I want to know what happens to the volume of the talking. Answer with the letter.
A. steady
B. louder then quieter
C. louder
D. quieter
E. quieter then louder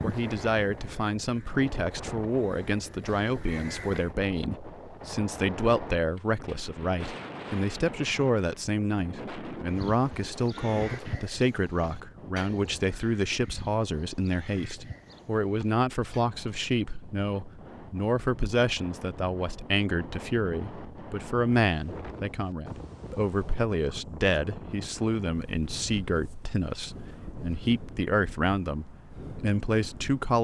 A.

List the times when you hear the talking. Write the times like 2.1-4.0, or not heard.
0.0-30.3.